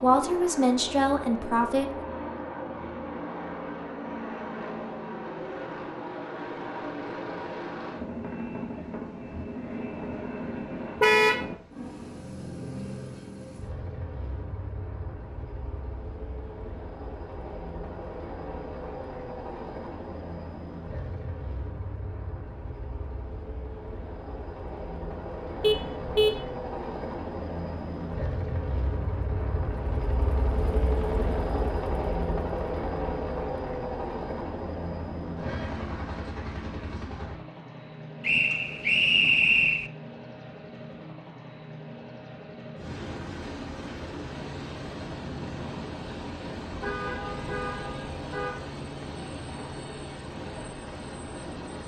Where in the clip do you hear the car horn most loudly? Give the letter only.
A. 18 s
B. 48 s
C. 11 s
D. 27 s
C.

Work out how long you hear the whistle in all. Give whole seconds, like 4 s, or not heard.
2 s.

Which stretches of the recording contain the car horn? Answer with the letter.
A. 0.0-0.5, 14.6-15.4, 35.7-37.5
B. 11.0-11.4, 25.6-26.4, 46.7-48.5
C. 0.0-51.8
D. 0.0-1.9
B.